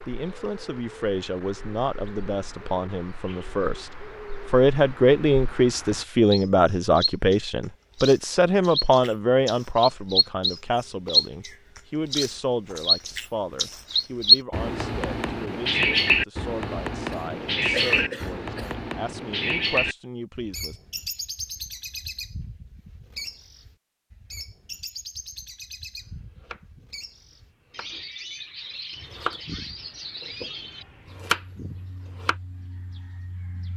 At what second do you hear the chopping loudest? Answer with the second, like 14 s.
31 s.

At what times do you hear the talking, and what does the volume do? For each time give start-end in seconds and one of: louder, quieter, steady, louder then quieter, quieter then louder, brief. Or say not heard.
0.0-20.8 louder then quieter.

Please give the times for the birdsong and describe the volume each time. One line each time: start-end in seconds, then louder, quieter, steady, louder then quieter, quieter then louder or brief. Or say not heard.
0.0-33.7 louder then quieter.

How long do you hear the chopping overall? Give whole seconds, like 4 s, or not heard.
6 s.